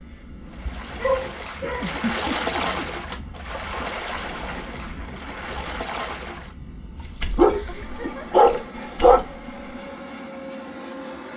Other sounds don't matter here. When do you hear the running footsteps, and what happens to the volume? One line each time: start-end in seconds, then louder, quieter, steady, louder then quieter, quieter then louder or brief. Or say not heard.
not heard.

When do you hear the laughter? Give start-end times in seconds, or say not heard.
1.8-2.8, 7.7-8.4.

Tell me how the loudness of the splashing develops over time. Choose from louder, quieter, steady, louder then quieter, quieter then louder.
quieter.